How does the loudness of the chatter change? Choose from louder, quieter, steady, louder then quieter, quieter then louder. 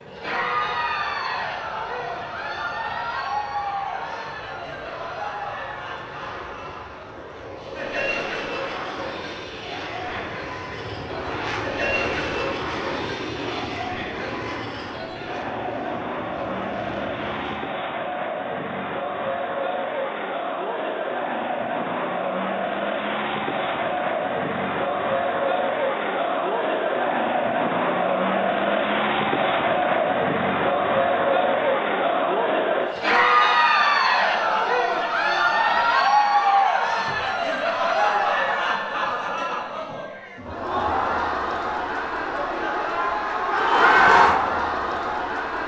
louder.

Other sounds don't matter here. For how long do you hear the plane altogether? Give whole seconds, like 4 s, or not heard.
18 s.